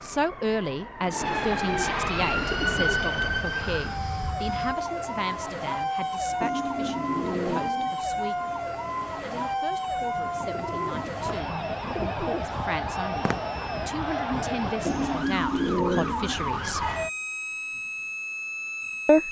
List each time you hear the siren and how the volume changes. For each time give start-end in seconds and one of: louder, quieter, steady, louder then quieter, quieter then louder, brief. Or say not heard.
0.0-19.2 steady.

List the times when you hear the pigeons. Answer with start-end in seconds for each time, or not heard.
1.0-3.0, 6.4-8.0, 10.1-12.4, 14.8-16.6.